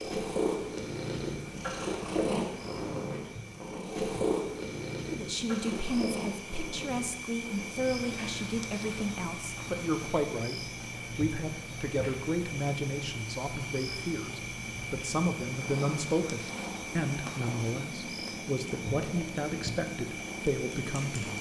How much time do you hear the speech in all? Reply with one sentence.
You can hear the speech for 16 seconds altogether.